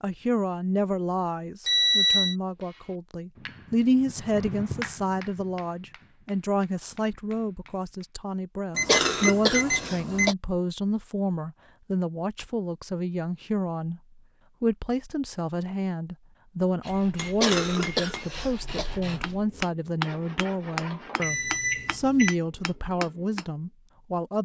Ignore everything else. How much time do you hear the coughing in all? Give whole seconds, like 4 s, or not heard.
3 s.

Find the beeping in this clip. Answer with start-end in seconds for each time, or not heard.
1.6-2.4, 8.8-10.3, 21.2-22.4.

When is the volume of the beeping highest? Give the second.
2 s.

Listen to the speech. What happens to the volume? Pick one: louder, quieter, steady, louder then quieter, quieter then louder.
steady.